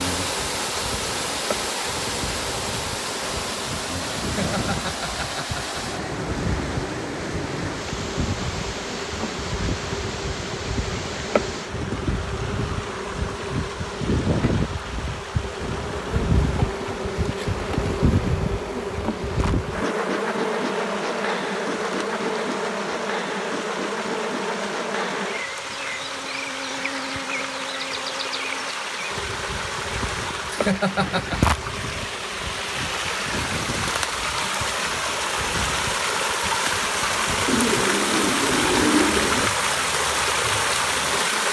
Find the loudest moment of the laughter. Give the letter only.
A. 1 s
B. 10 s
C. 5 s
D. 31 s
D.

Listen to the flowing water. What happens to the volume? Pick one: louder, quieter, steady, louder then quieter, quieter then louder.
quieter then louder.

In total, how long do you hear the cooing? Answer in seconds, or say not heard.
2 s.